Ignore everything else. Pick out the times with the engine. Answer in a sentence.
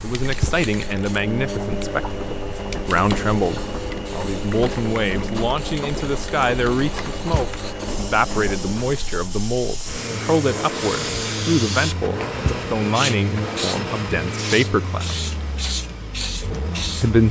The engine can be heard from 0.0 to 17.2 s.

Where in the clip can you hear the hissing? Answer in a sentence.
You can hear the hissing from 0.0 to 17.1 s.